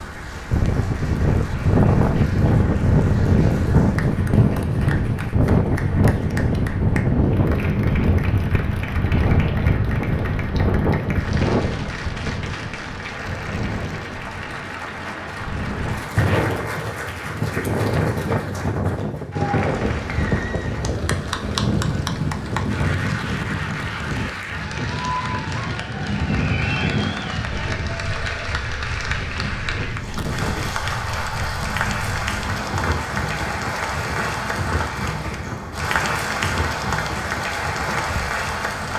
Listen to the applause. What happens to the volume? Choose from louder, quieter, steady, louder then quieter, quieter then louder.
louder.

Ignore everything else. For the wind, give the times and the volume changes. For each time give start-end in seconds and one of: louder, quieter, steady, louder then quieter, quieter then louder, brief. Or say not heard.
0.0-38.9 quieter.